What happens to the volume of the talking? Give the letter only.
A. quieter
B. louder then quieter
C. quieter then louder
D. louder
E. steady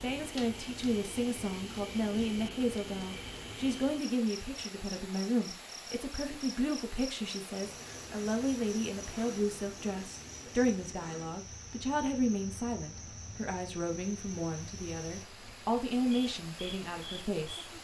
E.